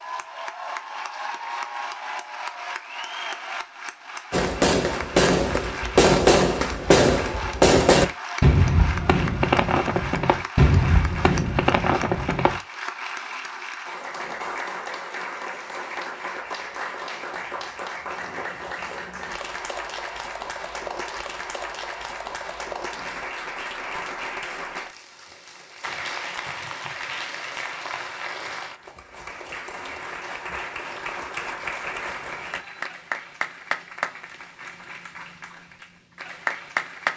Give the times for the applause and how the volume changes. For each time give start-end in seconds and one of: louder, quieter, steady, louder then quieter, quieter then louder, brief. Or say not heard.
0.0-37.1 steady.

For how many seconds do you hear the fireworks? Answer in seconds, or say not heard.
8 s.